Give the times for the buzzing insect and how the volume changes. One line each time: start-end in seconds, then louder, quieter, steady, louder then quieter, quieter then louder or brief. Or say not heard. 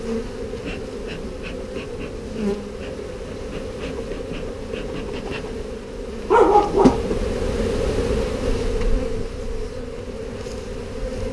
0.0-11.2 louder then quieter.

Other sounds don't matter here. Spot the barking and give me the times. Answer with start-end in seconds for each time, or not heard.
6.3-7.1.